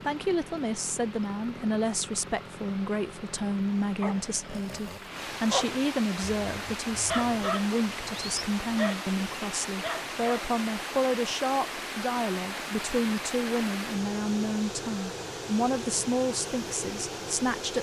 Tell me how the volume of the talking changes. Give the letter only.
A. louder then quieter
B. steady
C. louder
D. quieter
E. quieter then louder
B.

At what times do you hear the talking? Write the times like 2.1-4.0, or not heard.
0.1-17.7.